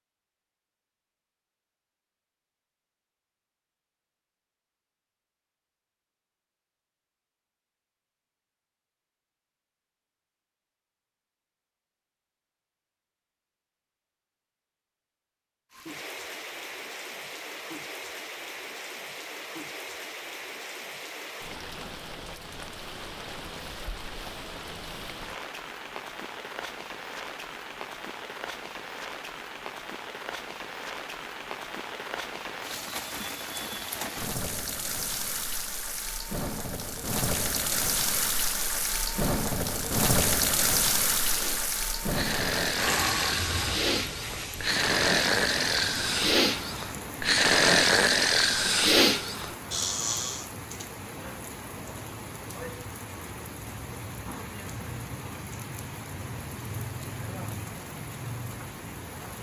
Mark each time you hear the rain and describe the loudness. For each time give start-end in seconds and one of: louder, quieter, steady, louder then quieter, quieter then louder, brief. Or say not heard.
15.7-59.3 louder then quieter.